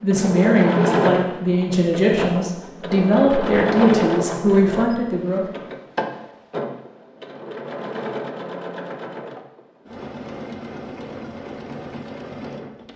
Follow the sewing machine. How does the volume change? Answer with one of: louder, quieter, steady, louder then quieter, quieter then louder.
quieter.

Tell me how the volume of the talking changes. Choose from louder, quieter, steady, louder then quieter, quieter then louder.
steady.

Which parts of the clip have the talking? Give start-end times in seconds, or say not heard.
0.0-5.5.